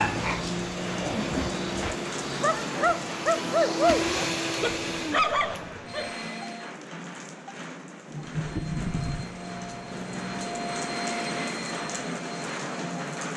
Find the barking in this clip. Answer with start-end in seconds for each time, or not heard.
0.0-6.2.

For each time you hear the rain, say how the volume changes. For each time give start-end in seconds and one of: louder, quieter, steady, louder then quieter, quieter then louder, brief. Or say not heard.
0.0-13.3 quieter then louder.